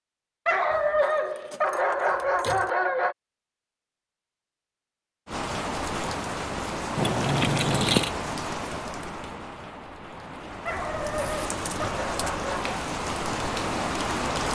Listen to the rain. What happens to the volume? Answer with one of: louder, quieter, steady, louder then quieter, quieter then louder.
quieter then louder.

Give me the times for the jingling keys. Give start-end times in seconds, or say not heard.
0.7-2.8, 7.0-8.1, 10.7-12.4.